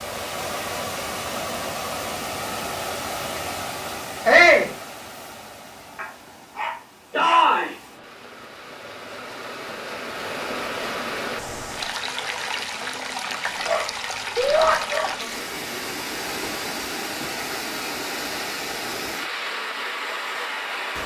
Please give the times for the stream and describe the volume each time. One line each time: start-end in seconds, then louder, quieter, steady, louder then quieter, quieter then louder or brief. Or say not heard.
0.0-21.0 quieter then louder.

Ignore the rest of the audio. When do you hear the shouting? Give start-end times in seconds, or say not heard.
4.2-4.7, 7.2-7.7, 14.3-14.8.